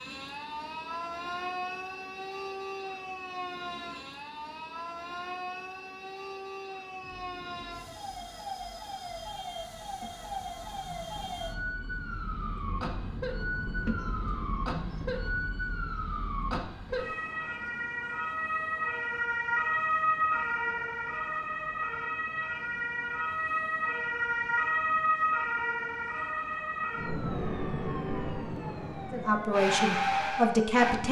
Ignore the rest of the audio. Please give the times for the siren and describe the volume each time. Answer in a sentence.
The siren can be heard from 0.0 to 31.0 s, getting louder.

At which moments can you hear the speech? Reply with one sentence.
You can hear the speech from 29.1 to 31.0 s.